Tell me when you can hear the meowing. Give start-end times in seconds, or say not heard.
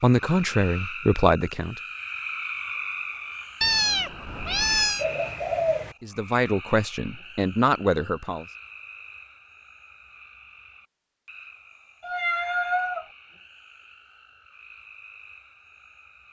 3.6-5.0, 12.0-13.1.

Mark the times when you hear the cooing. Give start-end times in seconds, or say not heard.
5.0-6.0.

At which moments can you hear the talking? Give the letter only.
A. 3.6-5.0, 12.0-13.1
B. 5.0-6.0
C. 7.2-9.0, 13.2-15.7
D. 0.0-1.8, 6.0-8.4
D.